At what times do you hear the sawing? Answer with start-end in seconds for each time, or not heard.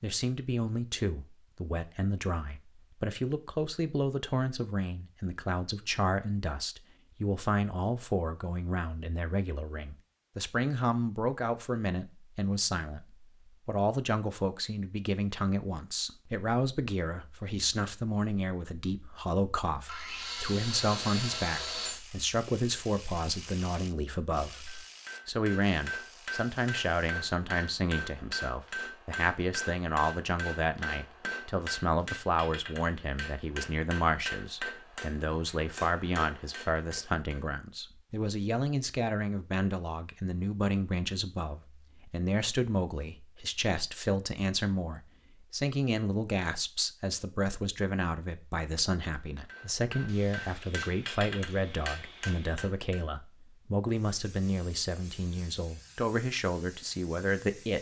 19.9-22.0, 50.0-52.6.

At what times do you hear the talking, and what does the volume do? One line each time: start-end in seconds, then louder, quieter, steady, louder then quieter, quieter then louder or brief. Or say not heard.
0.0-57.7 steady.